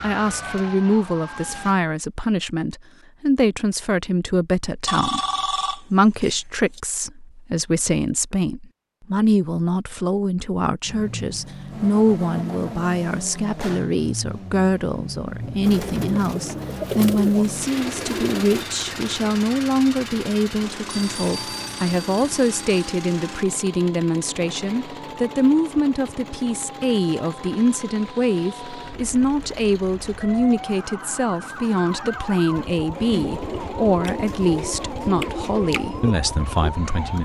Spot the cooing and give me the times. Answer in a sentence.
You can hear the cooing from 15.6 to 19.2 s and from 32.9 to 37.2 s.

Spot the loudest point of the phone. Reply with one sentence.
The volume of the phone peaks at 5 seconds.